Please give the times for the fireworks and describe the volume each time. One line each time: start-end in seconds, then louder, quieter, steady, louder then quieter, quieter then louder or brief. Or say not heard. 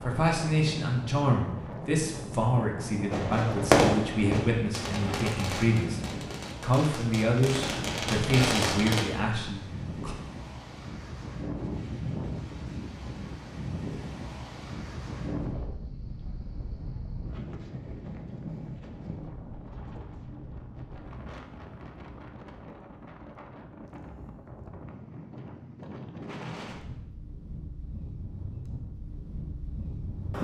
3.1-9.1 quieter then louder.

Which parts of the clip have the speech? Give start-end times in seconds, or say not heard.
0.0-10.2.